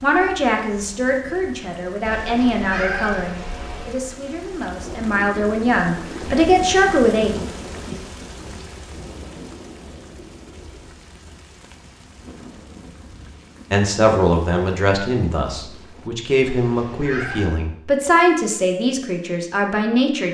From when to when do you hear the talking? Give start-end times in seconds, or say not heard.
0.0-7.3, 13.7-20.2.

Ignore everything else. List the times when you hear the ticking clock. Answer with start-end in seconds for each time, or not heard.
not heard.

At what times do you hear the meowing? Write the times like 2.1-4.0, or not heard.
2.0-4.0, 16.4-17.6.